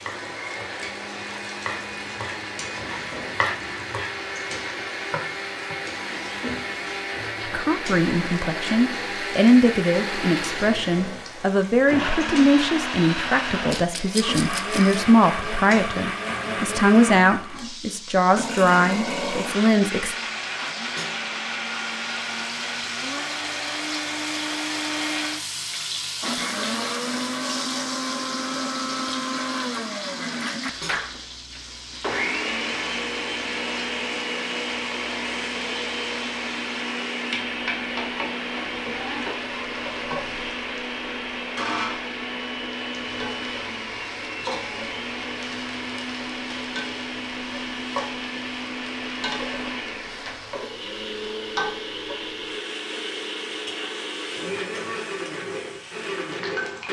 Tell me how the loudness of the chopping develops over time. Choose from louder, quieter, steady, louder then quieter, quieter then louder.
louder then quieter.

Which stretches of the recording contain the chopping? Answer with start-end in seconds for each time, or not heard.
0.0-6.0.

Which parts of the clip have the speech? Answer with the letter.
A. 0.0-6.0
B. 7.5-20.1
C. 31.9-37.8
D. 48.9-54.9
B.